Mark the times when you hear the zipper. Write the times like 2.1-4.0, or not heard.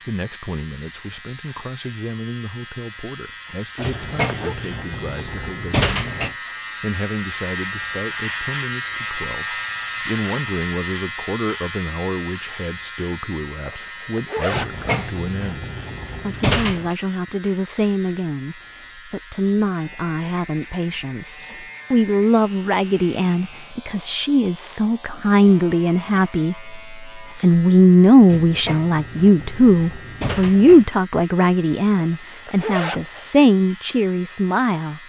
3.8-4.5, 13.7-14.8, 32.1-33.2.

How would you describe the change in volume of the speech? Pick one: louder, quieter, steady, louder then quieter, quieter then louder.
louder.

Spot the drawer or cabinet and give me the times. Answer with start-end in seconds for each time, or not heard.
3.8-6.3, 14.5-16.9, 28.2-30.9.